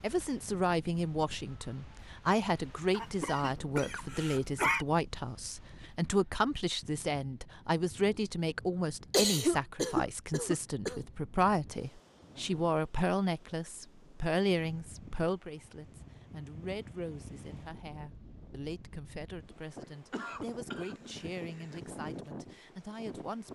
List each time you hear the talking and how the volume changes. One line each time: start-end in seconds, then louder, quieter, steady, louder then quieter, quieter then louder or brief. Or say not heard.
0.0-23.5 quieter.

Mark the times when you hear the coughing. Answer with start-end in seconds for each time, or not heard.
2.9-4.8, 9.1-11.0, 19.8-21.8.